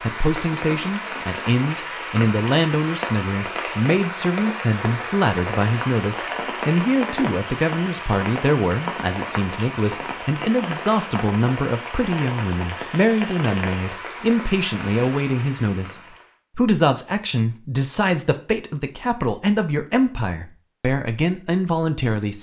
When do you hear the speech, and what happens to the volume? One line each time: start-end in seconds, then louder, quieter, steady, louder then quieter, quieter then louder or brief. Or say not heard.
0.0-22.3 steady.